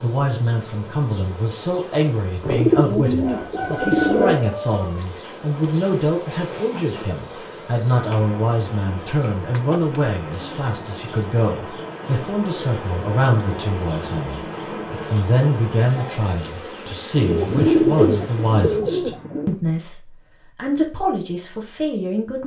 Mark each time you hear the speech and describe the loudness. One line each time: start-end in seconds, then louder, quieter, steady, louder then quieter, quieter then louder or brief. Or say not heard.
0.0-14.4 steady
15.1-22.4 steady.